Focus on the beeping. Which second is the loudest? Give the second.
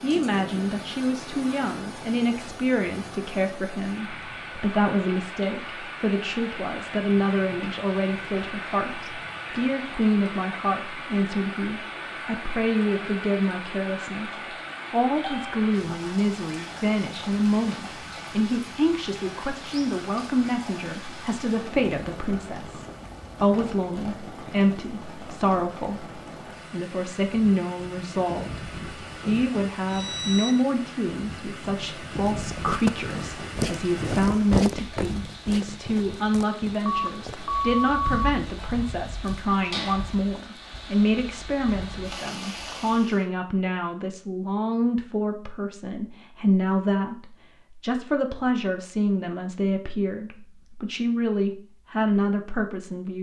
38 s.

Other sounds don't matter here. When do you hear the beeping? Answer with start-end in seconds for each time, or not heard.
15.2-15.7, 29.9-30.6, 36.9-38.2.